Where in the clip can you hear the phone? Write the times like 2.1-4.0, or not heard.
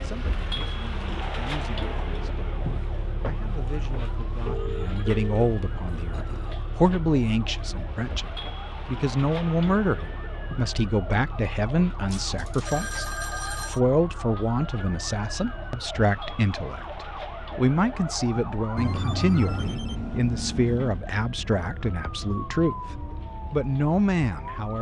4.5-6.7, 12.1-13.8, 18.8-21.0.